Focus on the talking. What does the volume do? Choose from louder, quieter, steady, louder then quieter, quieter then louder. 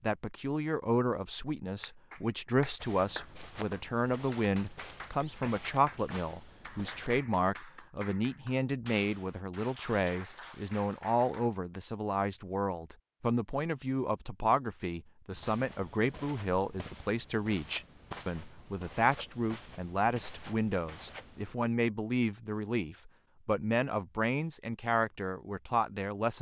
steady.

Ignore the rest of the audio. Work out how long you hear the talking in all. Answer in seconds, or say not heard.
26 s.